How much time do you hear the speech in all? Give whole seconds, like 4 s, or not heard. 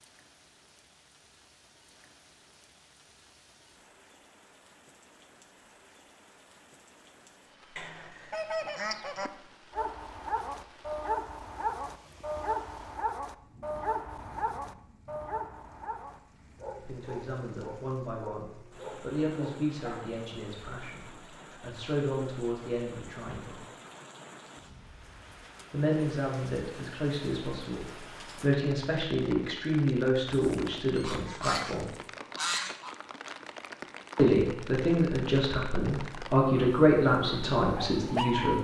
17 s.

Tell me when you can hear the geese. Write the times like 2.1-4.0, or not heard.
7.8-9.3, 30.3-33.0.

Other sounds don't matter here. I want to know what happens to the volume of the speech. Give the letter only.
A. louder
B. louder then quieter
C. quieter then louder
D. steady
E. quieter
A.